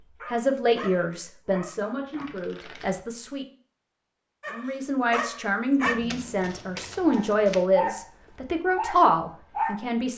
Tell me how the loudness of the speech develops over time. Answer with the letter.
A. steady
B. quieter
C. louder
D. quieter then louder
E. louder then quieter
D.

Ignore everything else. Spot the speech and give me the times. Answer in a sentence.
The speech can be heard from 0.3 to 3.5 s and from 4.5 to 10.1 s.